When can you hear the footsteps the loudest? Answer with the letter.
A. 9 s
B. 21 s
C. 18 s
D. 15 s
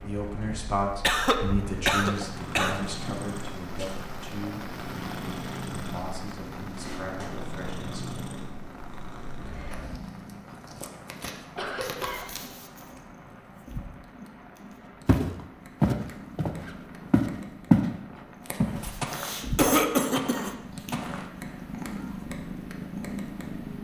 C.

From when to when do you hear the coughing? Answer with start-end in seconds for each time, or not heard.
0.9-2.9, 11.6-12.4, 19.1-20.5.